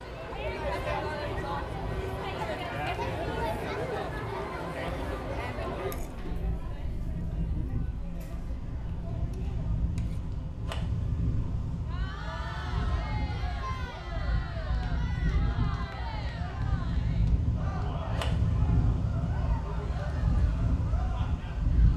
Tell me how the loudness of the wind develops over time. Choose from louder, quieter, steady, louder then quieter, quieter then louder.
louder.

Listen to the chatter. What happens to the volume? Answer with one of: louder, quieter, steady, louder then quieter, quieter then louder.
quieter.